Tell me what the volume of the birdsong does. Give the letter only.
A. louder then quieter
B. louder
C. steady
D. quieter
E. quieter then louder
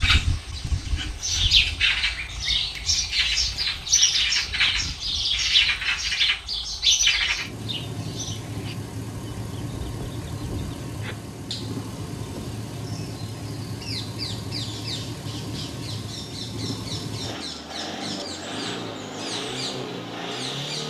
D.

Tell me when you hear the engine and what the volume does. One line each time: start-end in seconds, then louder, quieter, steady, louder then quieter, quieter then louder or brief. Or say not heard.
0.1-20.8 louder.